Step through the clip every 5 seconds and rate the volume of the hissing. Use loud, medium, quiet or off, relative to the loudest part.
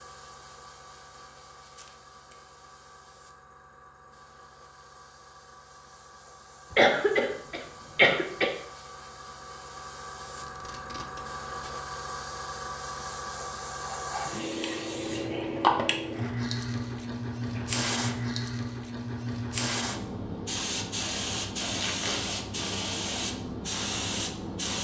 quiet, quiet, medium, loud, loud.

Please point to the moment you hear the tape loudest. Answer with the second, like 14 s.
22 s.